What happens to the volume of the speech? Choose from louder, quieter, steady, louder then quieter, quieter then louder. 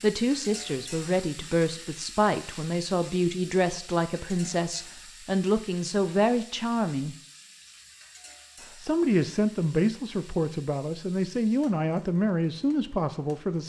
steady.